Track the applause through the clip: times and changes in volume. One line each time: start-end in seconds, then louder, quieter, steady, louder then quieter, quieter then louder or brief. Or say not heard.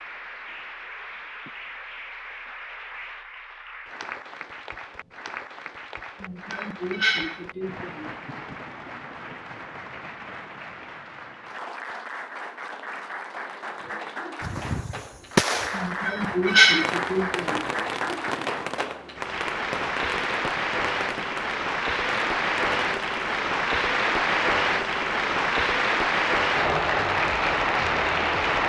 0.0-28.6 louder.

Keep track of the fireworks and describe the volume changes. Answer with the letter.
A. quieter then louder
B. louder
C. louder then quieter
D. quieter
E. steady
D.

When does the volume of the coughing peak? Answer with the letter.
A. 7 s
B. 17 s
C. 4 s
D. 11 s
B.